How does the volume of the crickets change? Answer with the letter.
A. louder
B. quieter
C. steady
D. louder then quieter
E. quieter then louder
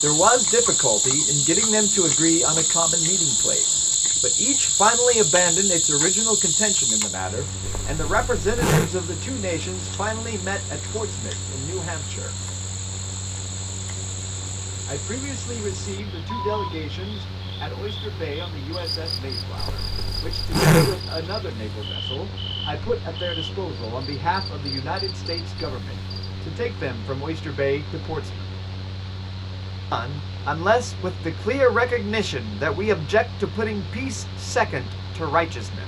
B.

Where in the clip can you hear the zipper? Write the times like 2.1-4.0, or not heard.
7.6-8.9, 19.6-21.0.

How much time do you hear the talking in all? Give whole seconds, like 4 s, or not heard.
32 s.